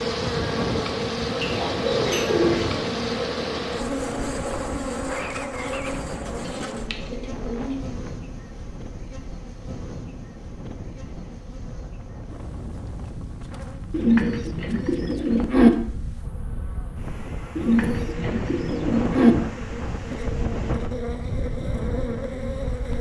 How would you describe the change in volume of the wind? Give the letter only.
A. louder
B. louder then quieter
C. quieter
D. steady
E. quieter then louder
E.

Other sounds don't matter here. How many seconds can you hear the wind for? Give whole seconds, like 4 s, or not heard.
23 s.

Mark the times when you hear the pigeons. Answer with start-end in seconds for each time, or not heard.
1.4-2.9, 6.4-8.1, 13.9-15.7, 17.6-19.4.